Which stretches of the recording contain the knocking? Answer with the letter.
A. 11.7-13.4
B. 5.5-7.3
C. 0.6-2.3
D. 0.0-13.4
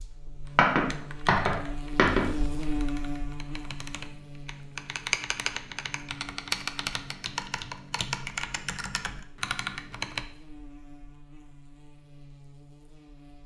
C.